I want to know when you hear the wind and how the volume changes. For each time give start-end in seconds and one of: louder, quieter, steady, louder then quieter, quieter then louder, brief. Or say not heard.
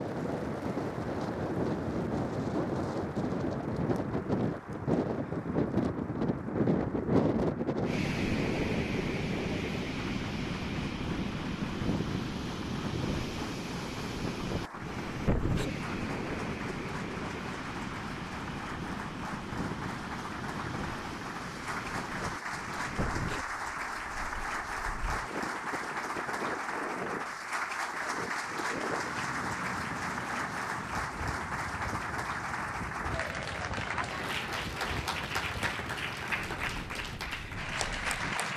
0.0-38.5 quieter.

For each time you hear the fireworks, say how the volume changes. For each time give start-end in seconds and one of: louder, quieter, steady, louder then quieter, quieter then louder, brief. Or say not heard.
not heard.